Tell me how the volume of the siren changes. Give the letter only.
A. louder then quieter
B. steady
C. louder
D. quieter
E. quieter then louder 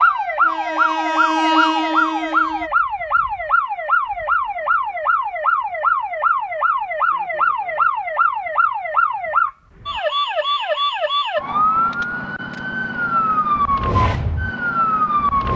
B.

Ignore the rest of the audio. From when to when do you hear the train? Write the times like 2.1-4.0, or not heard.
0.0-2.7.